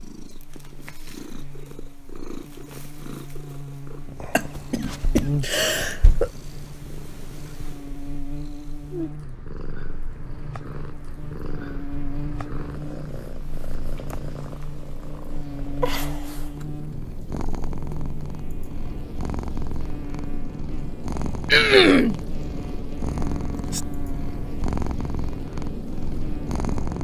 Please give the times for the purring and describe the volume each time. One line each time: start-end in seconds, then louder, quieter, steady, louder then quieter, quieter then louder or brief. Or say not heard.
0.0-27.0 louder.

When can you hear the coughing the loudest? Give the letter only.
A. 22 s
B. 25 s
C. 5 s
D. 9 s
A.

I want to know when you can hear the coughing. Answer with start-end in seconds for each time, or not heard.
4.3-6.3, 21.5-22.1.